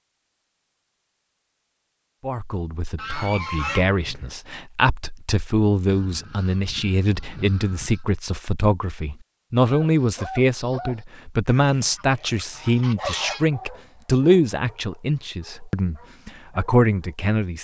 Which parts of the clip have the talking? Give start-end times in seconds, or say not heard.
2.2-17.5.